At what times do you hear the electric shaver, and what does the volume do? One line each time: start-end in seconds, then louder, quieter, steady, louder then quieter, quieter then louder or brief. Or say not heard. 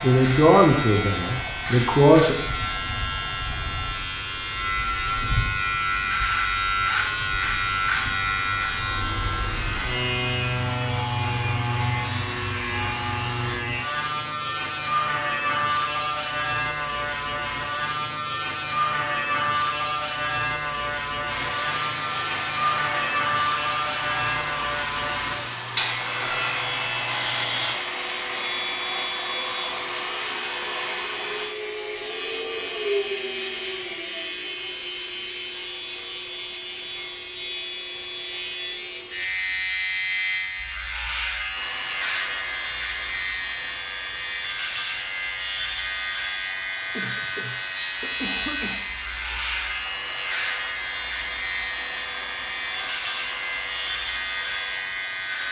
0.0-55.4 steady.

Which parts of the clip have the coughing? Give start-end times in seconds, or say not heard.
47.0-49.4.